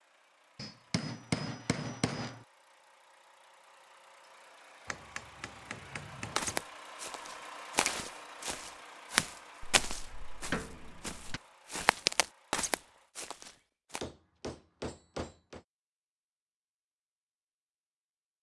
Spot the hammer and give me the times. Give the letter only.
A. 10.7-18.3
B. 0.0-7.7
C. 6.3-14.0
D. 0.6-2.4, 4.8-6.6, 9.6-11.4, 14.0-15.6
D.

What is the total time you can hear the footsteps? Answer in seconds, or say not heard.
8 s.